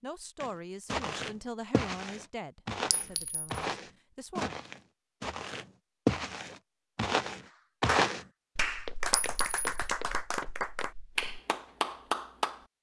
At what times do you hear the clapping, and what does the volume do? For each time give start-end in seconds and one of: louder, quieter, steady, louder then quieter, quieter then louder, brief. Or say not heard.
7.8-12.7 steady.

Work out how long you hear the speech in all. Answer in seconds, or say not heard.
5 s.